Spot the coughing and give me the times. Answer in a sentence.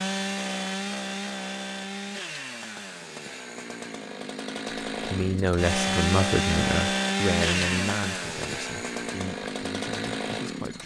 The coughing can't be heard in this clip.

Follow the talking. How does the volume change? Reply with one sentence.
The volume of the talking goes down.